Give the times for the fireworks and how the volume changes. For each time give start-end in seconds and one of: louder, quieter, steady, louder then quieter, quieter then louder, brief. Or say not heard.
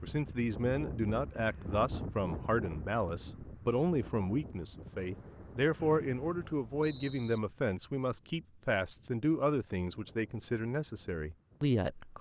not heard.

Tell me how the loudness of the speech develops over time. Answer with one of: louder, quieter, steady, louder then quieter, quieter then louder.
steady.